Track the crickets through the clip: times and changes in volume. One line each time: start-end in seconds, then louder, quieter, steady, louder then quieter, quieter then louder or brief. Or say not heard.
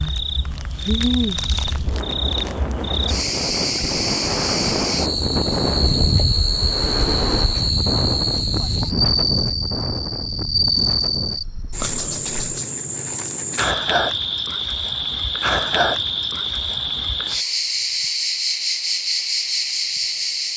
0.0-20.5 steady.